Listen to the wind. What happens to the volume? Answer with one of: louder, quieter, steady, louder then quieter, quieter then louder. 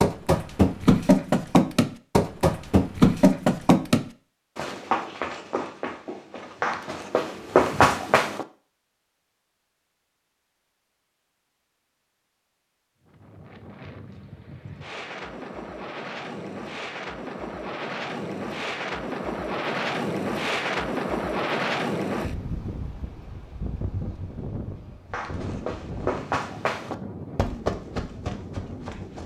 louder then quieter.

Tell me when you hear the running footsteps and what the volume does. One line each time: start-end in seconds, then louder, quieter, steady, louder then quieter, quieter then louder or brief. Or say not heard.
0.0-8.4 quieter then louder
25.1-29.2 quieter.